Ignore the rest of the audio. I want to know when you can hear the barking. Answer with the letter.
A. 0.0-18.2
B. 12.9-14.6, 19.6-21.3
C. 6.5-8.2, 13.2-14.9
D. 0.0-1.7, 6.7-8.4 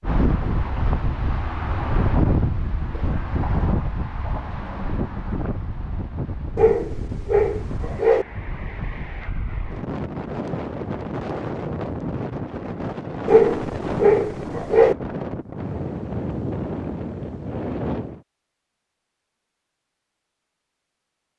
C.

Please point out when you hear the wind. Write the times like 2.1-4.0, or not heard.
0.0-18.2.